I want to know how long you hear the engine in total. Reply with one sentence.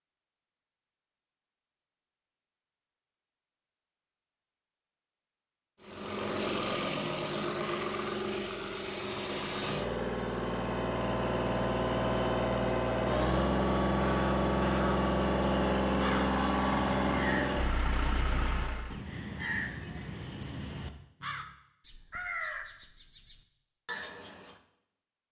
The engine can be heard for 13 seconds in total.